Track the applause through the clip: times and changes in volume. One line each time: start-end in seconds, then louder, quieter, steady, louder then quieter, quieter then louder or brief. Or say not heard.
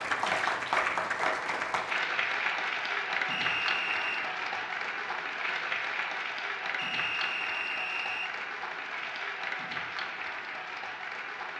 0.0-11.5 quieter.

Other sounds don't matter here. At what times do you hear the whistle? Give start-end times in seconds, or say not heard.
3.3-4.2, 6.8-8.3.